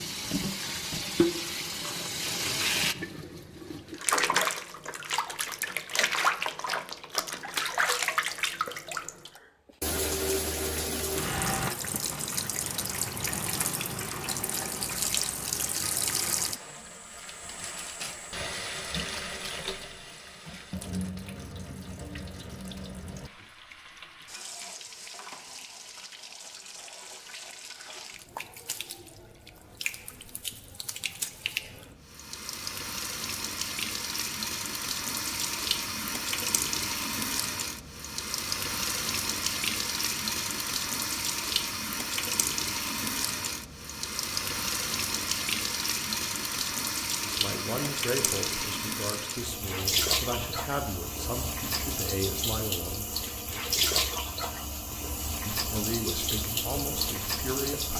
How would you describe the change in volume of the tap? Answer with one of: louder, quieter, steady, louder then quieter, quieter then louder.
quieter then louder.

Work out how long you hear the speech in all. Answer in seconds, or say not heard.
8 s.